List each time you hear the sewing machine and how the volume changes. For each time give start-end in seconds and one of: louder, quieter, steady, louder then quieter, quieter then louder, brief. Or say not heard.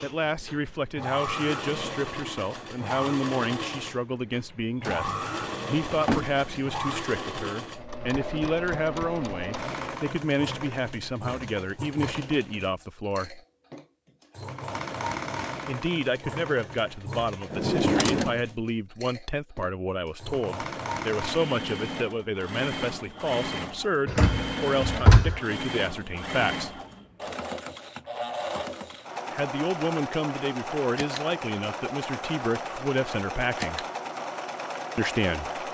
0.0-35.6 steady.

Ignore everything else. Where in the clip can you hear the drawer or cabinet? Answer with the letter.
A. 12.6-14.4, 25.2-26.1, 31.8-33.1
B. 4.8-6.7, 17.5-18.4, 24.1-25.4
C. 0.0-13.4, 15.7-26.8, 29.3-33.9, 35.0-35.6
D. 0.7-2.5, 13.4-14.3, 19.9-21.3
B.